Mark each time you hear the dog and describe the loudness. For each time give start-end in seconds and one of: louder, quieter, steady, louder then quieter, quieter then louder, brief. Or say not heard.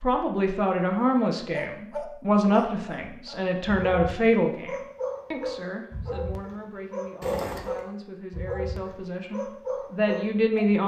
1.5-10.7 steady.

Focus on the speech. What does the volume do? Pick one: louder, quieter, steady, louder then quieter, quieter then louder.
quieter then louder.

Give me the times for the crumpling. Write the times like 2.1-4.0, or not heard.
7.2-7.8.